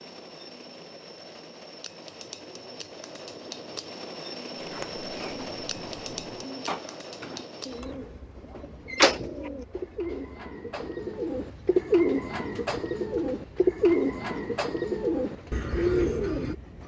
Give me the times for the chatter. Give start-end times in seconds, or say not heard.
not heard.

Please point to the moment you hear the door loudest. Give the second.
9 s.